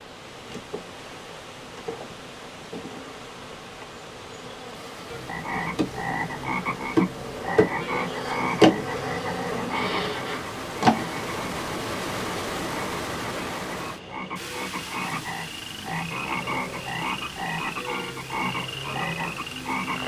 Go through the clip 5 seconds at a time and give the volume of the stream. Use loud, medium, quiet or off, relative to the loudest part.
medium, medium, loud, medium.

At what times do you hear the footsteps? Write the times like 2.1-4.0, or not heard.
not heard.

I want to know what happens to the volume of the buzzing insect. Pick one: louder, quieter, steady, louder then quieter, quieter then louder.
louder then quieter.